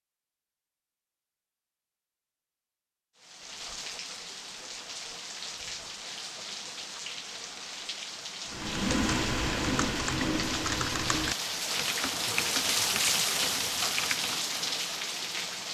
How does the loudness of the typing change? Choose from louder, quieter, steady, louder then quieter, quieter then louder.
quieter.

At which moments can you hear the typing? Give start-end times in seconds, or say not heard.
8.5-14.4.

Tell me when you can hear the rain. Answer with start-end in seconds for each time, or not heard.
3.1-15.6.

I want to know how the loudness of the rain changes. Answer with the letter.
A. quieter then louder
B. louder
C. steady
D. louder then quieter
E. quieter
B.